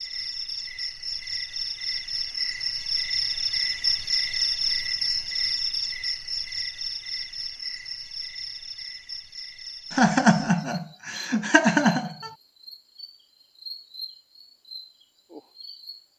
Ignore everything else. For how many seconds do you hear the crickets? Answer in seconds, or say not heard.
16 s.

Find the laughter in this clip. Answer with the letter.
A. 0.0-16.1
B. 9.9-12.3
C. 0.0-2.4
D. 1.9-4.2
B.